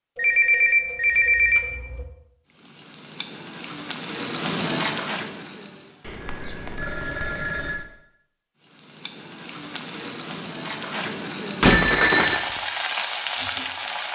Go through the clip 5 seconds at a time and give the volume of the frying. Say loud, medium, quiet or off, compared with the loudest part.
loud, medium, loud.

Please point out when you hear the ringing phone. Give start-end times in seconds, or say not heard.
0.1-2.0, 6.0-7.8, 11.6-12.4.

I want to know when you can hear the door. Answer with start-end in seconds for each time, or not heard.
11.6-12.3.